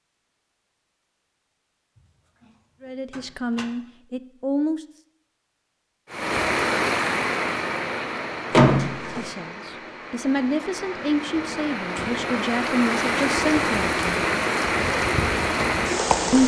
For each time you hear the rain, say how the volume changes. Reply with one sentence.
You can hear the rain from 6.1 to 16.4 s, getting quieter then louder.